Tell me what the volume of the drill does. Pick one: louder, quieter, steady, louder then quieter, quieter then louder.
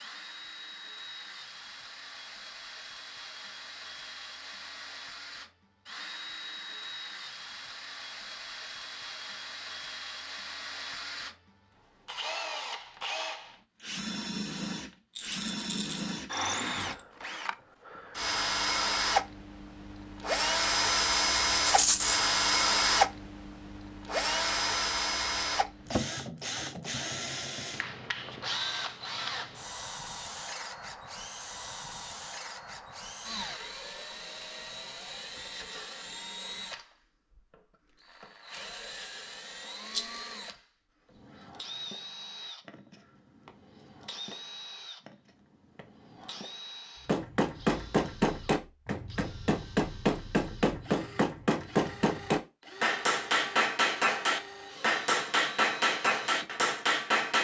louder then quieter.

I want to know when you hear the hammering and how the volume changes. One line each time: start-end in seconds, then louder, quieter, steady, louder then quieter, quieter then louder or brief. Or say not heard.
47.0-57.3 steady.